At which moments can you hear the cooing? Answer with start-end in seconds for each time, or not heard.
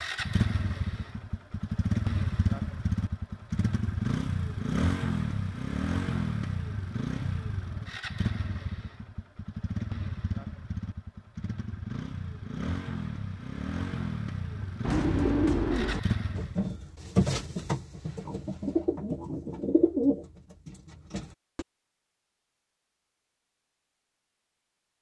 14.8-21.6.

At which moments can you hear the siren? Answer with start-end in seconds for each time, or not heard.
not heard.